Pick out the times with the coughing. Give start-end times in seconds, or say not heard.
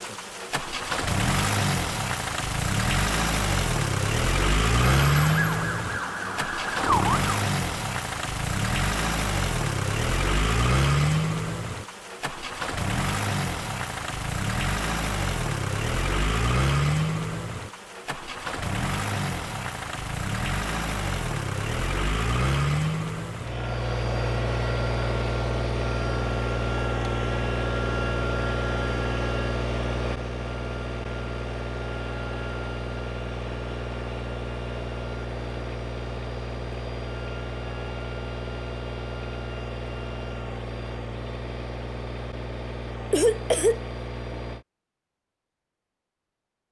43.1-43.8.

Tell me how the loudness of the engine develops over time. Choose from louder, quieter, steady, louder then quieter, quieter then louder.
quieter.